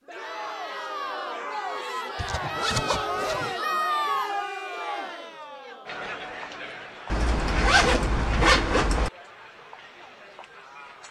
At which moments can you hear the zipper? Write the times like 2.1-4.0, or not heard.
2.1-3.5, 7.1-9.1.